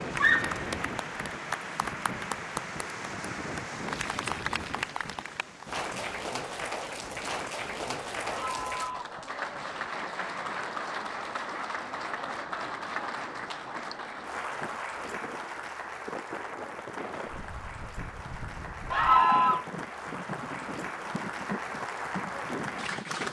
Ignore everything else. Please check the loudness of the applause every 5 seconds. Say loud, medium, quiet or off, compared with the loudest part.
loud, loud, loud, medium, loud.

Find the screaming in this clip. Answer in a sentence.
The screaming can be heard from 0.1 to 0.6 s, from 8.2 to 9.2 s and from 18.9 to 19.6 s.